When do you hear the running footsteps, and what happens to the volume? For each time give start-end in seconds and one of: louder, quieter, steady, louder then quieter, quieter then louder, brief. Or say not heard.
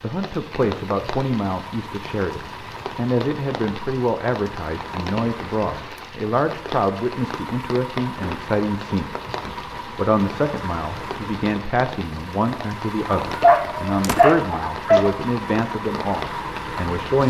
not heard.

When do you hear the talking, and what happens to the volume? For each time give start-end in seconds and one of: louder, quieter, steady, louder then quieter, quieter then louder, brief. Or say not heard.
0.0-17.2 steady.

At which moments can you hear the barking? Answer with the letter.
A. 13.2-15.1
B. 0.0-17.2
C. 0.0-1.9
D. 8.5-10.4
A.